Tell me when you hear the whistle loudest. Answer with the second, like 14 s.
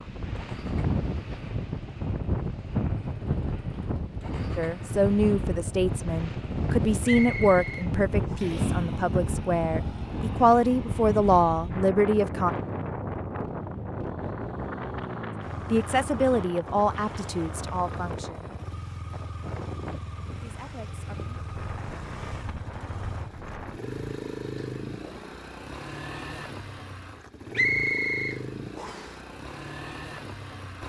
28 s.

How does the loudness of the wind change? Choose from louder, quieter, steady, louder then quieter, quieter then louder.
quieter.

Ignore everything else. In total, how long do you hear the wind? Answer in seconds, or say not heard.
24 s.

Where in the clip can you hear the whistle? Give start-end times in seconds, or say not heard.
7.0-8.4, 27.6-29.1.